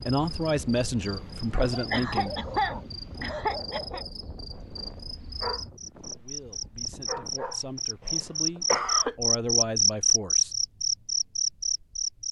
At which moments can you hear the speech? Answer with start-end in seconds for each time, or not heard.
0.1-2.5, 6.2-10.6.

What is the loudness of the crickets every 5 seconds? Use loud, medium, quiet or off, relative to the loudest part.
quiet, loud, loud.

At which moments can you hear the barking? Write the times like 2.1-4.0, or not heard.
1.5-7.7.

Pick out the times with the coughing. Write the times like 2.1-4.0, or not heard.
1.9-4.0, 8.0-9.2.